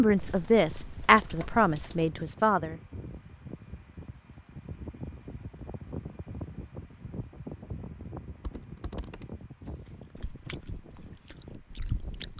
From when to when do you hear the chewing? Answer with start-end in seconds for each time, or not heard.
10.2-12.3.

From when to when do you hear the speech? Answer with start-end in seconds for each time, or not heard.
0.0-2.8.